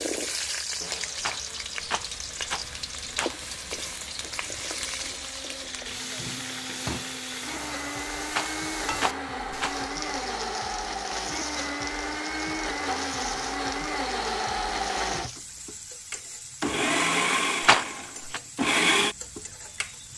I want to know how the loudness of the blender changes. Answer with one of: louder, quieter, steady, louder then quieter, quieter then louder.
louder.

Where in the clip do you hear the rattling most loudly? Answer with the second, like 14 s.
18 s.